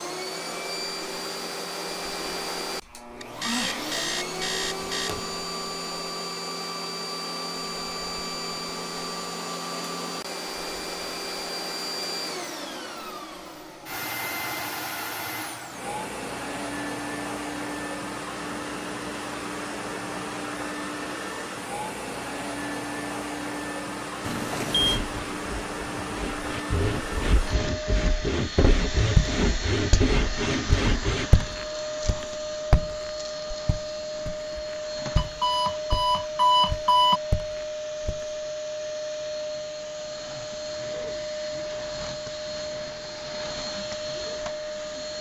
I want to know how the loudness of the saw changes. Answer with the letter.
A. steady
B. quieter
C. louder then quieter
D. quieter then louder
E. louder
E.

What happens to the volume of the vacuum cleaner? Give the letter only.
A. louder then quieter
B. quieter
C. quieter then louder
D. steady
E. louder
D.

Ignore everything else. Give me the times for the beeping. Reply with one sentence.
The beeping can be heard from 3.2 to 5.2 s, from 24.2 to 25.0 s and from 35.1 to 37.2 s.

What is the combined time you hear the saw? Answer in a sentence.
You can hear the saw for 7 seconds altogether.